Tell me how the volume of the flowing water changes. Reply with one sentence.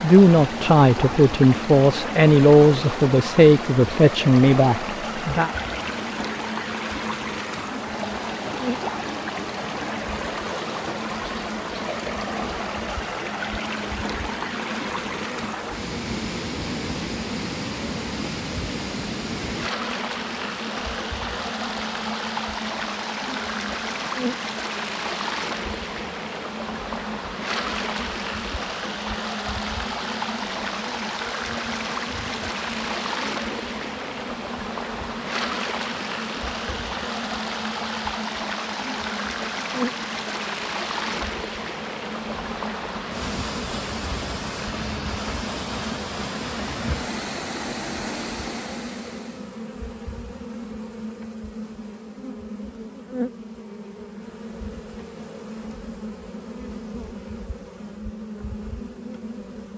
The loudness of the flowing water stays about the same.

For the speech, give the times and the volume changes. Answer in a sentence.
You can hear the speech from 0.0 to 5.5 s, at a steady volume.